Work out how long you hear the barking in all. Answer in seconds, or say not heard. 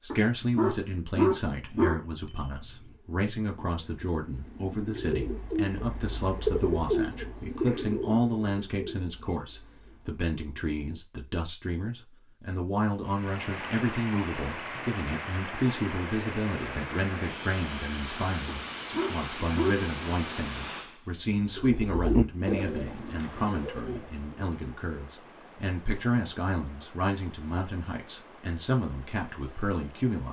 4 s.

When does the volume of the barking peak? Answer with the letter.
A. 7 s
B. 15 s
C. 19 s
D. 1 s
D.